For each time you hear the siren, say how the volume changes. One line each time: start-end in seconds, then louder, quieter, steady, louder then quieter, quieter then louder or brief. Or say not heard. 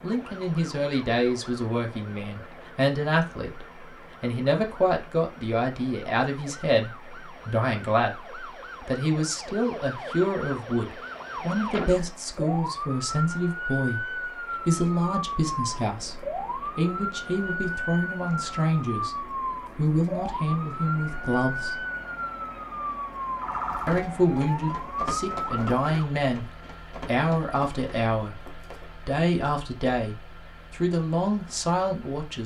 0.0-26.1 louder.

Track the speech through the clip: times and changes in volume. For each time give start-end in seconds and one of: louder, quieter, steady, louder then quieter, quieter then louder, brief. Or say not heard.
0.0-19.1 steady
19.8-21.8 brief
23.9-32.4 steady.